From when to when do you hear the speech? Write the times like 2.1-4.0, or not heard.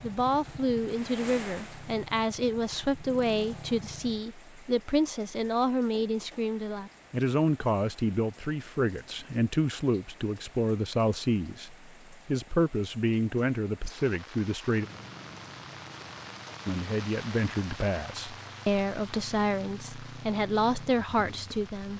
0.0-14.8, 16.6-21.9.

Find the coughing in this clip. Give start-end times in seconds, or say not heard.
not heard.